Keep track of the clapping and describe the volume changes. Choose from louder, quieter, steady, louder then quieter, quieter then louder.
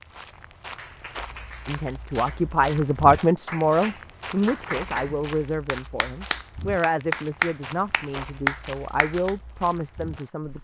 louder.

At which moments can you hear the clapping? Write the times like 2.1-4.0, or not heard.
0.7-9.3.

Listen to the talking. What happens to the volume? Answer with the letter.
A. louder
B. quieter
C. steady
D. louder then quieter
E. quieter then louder
B.